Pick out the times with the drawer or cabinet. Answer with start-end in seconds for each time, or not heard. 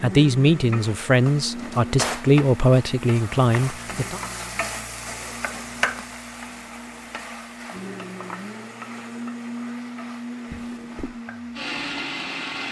1.5-2.3, 5.0-6.0, 10.5-11.2.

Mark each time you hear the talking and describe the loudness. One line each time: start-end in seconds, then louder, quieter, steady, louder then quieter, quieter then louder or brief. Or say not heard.
0.0-4.2 steady.